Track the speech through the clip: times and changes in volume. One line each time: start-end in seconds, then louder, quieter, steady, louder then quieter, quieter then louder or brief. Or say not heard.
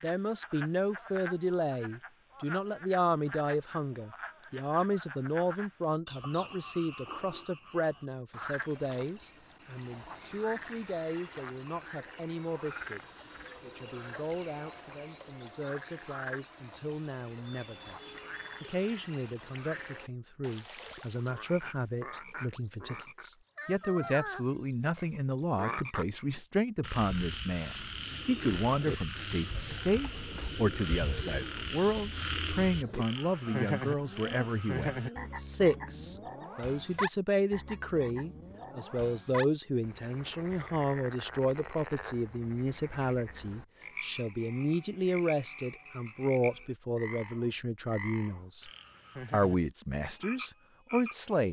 0.0-48.7 quieter then louder
49.3-51.4 brief.